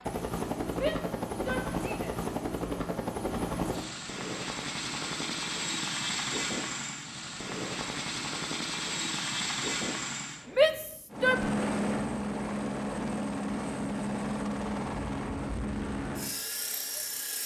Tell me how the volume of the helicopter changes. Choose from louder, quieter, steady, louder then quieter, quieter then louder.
steady.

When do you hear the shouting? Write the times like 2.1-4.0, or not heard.
0.8-2.1, 10.6-11.5.